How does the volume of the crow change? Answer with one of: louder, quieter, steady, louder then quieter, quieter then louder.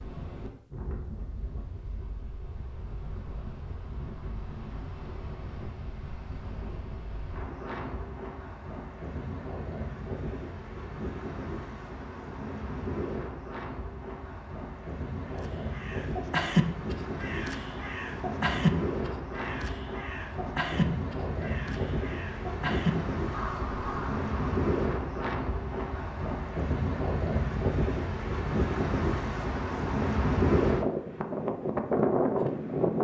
quieter then louder.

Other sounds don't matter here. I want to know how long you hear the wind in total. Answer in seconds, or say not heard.
33 s.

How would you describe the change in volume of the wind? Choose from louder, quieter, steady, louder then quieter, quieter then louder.
louder.